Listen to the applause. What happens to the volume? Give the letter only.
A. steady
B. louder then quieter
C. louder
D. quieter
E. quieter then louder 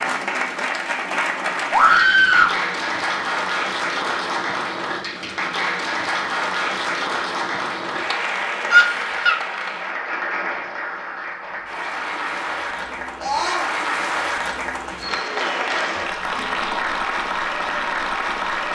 A.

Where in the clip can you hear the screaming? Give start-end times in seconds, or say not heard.
1.7-2.5, 8.7-9.4, 13.2-13.7.